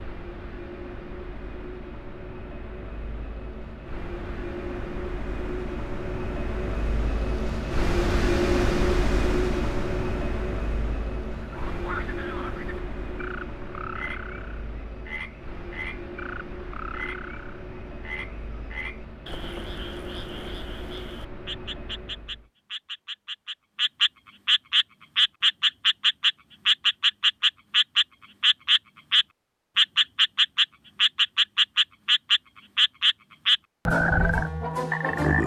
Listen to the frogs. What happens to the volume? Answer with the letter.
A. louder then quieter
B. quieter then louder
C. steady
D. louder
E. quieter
D.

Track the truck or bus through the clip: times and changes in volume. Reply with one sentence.
The truck or bus can be heard from 0.0 to 22.5 s, getting louder then quieter.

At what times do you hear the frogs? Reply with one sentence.
You can hear the frogs from 11.4 to 35.4 s.